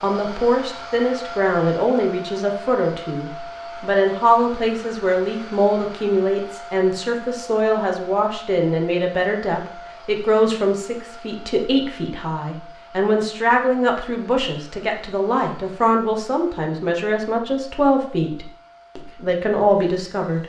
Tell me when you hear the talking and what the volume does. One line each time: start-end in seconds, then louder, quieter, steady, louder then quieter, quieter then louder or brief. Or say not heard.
0.0-20.4 steady.